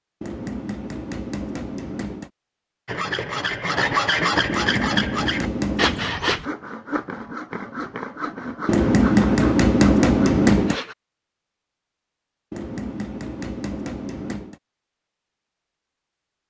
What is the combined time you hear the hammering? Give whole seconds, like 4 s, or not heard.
8 s.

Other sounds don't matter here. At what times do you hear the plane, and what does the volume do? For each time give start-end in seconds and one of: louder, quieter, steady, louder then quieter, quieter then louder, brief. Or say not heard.
not heard.